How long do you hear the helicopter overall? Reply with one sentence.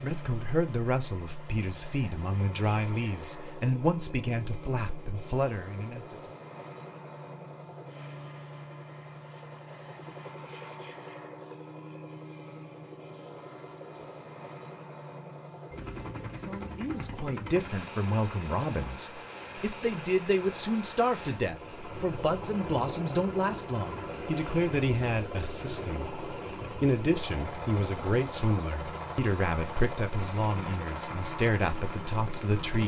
You can hear the helicopter for 33 seconds altogether.